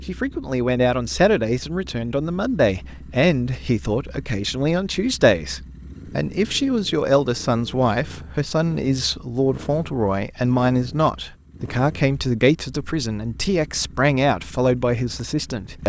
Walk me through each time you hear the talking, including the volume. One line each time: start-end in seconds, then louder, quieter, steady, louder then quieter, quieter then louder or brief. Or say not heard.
0.1-15.8 steady.